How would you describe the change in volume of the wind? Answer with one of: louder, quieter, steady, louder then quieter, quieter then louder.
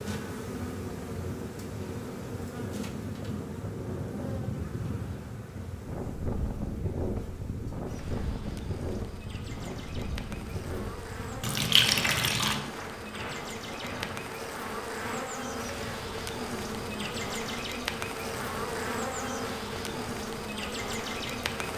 quieter.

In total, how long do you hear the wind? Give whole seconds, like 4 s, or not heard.
22 s.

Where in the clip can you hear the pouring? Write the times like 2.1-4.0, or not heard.
11.4-12.6.